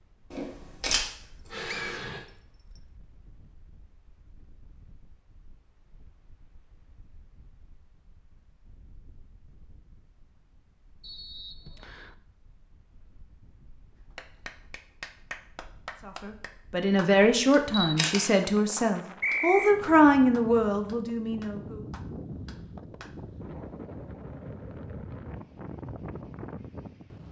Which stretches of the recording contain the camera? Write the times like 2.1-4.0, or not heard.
0.3-2.2, 17.7-18.3.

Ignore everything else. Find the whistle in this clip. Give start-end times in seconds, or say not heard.
1.7-2.8, 11.0-12.2, 19.2-19.8.